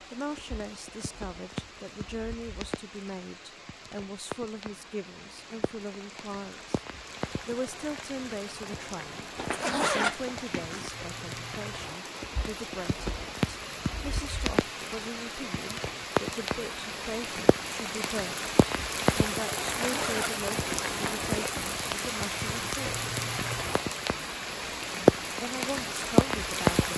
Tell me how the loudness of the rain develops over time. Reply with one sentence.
The volume of the rain goes up.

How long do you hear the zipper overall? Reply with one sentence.
The zipper can be heard for 3 seconds in total.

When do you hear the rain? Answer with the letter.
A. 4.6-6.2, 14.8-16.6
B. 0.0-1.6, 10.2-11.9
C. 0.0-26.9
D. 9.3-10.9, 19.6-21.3
C.